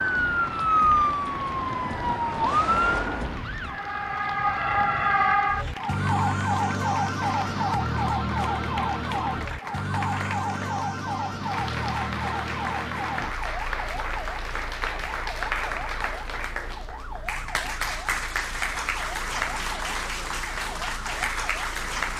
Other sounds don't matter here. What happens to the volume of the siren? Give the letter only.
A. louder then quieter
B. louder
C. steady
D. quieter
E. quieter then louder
D.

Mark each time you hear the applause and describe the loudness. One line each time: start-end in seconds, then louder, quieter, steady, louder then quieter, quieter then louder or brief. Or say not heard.
0.0-22.1 louder.